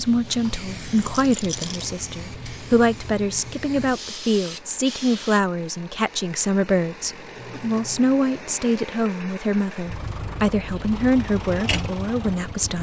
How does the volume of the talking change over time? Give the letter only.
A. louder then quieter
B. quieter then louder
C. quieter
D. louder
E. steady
E.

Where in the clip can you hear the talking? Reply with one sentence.
The talking can be heard from 0.0 to 12.7 s.